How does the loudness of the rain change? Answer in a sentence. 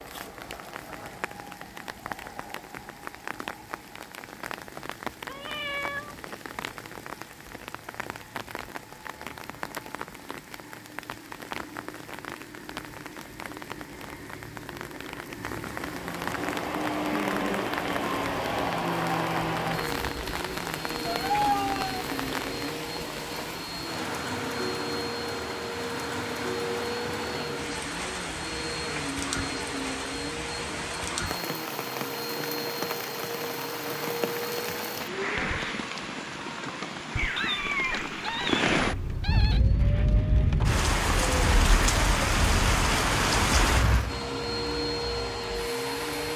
The volume of the rain goes up.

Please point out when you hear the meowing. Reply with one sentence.
The meowing can be heard from 5.2 to 6.4 s, from 21.1 to 22.1 s and from 37.1 to 39.6 s.